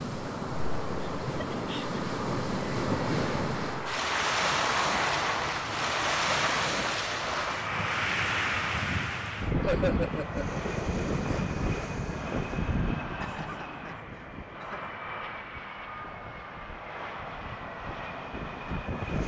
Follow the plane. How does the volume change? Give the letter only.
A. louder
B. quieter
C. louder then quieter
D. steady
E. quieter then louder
C.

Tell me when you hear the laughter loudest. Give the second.
10 s.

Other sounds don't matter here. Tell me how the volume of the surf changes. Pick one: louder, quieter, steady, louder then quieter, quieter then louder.
quieter.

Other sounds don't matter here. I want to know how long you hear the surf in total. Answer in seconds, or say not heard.
19 s.